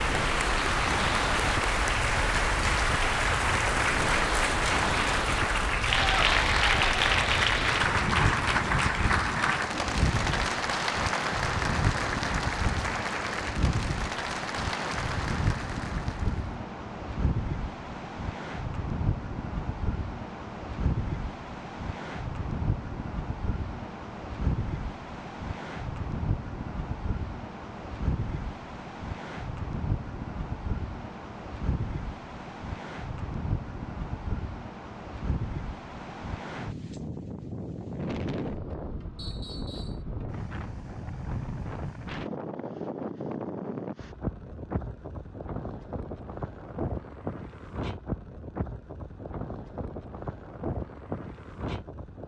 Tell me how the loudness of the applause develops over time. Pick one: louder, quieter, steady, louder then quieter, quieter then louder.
quieter.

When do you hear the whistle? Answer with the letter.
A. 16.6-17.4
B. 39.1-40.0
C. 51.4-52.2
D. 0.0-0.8
B.